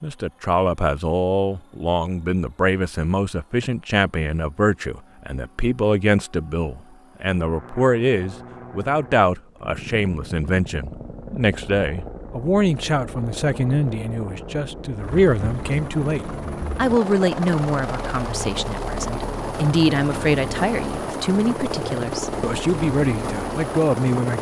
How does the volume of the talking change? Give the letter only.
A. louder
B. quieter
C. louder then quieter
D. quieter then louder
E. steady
E.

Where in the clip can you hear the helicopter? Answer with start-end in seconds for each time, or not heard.
0.0-24.3.